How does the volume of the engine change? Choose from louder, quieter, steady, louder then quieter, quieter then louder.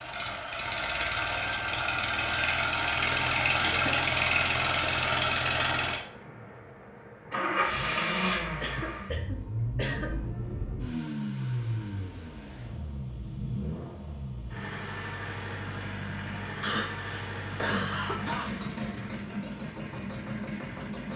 quieter.